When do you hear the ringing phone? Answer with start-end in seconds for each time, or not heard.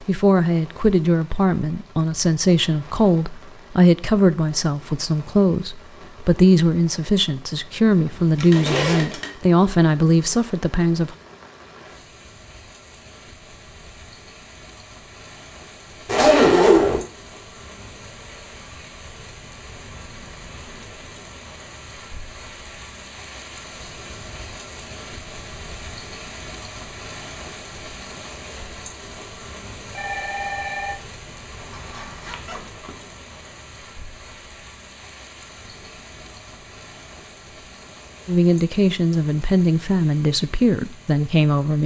8.3-9.3, 29.9-31.1.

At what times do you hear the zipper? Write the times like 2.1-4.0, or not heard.
8.3-9.2, 16.1-17.0, 31.1-33.0.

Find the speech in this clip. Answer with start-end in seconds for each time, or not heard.
0.0-11.2, 38.2-41.8.